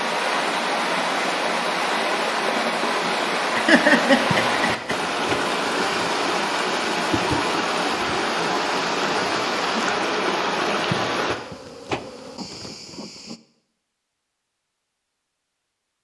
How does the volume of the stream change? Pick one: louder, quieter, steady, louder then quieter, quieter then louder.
steady.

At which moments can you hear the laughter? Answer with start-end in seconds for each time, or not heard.
3.5-5.0.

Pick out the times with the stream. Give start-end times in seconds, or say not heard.
0.0-11.3.